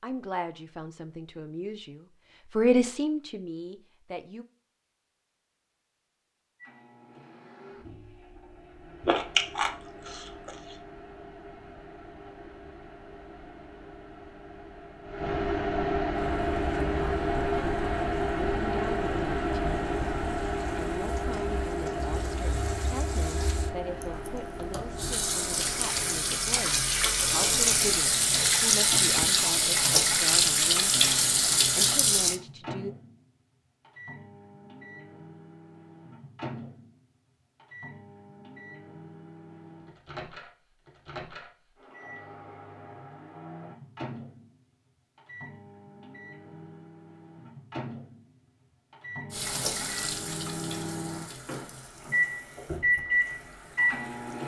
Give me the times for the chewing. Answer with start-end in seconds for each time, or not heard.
9.0-10.8.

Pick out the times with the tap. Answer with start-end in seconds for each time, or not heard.
16.4-32.4, 49.3-54.4.